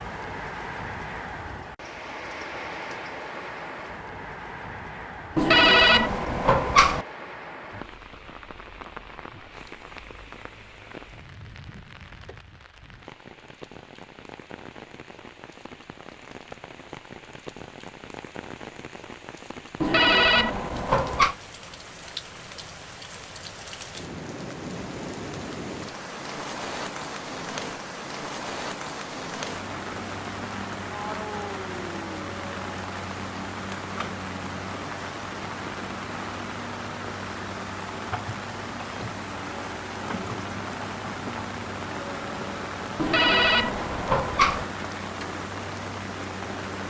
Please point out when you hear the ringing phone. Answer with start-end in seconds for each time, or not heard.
5.3-7.0, 19.8-21.4, 43.0-44.6.